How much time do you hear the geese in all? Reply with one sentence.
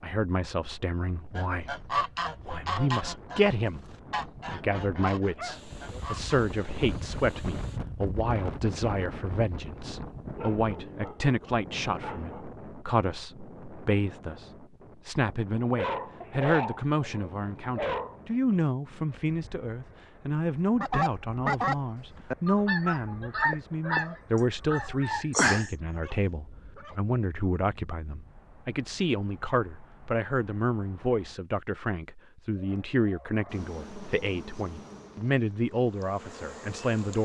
You can hear the geese for 10 seconds altogether.